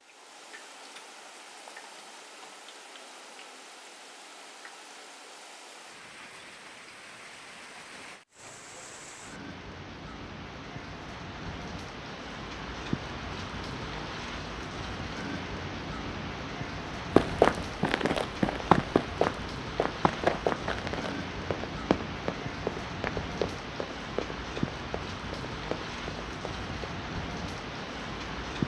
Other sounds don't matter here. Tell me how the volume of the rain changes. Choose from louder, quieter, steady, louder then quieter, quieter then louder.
louder.